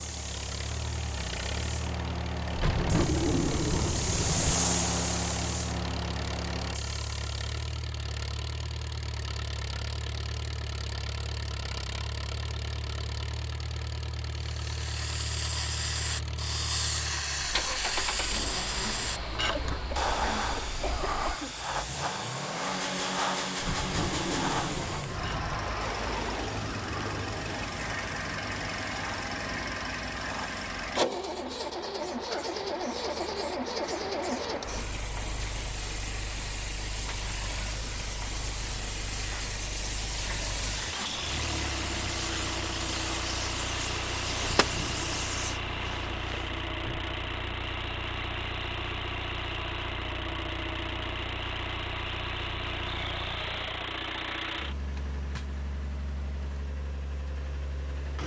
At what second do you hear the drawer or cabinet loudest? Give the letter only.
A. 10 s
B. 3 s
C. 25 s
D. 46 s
B.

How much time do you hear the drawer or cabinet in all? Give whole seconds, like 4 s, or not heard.
5 s.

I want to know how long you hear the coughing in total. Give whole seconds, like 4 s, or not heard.
2 s.